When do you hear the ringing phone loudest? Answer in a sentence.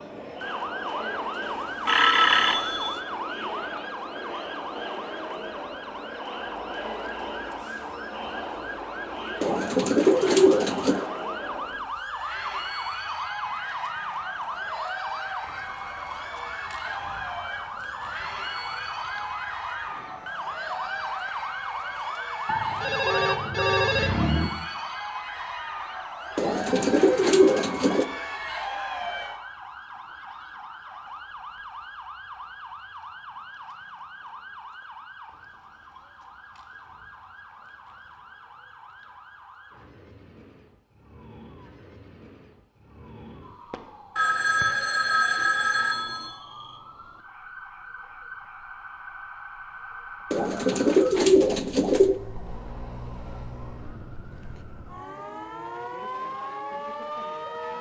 The volume of the ringing phone peaks at 2 seconds.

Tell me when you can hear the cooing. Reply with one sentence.
The cooing can be heard from 9.4 to 11.1 s, from 26.4 to 28.1 s and from 50.3 to 52.2 s.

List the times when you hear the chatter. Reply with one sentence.
The chatter can be heard from 0.0 to 29.4 s.